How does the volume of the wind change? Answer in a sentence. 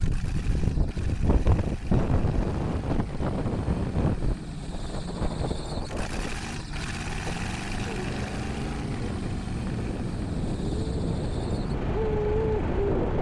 The loudness of the wind goes down, then up.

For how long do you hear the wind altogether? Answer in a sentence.
The wind can be heard for 13 seconds in total.